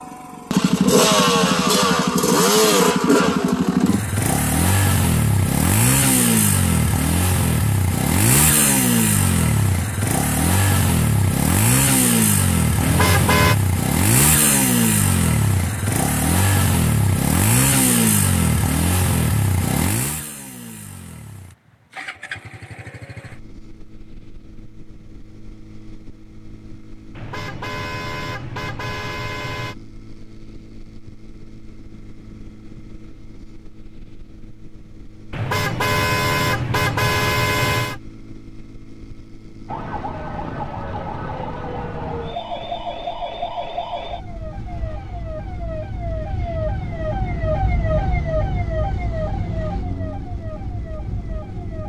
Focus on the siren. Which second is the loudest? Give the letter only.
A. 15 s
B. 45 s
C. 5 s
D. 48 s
D.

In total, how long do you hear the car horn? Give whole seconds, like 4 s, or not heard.
6 s.